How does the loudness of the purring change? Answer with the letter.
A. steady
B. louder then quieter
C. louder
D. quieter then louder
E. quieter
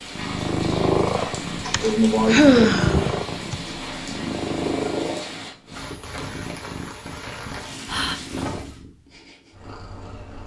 E.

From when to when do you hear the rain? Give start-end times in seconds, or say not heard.
0.0-8.8.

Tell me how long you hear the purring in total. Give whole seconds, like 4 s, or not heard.
10 s.